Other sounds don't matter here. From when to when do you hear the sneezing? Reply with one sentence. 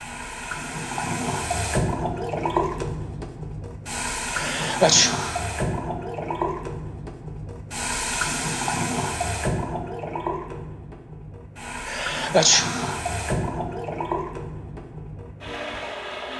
You can hear the sneezing from 4.3 to 5.5 s and from 11.8 to 12.9 s.